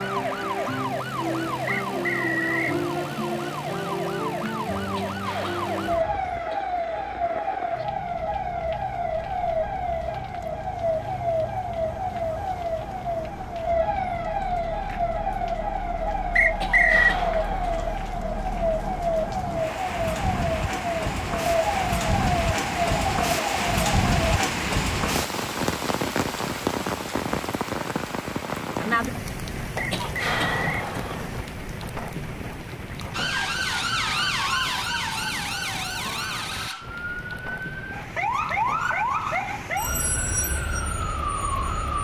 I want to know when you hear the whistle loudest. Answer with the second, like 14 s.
17 s.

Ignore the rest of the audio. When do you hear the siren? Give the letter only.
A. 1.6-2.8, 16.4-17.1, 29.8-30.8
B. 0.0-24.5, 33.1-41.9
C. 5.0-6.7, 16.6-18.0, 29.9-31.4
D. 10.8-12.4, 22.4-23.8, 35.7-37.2
B.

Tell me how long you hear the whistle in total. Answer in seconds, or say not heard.
3 s.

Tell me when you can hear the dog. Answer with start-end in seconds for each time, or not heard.
not heard.